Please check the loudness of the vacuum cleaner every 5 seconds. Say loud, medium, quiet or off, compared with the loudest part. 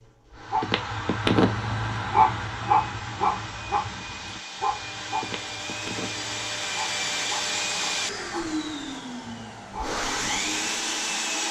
quiet, loud, loud.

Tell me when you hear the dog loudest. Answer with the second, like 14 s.
2 s.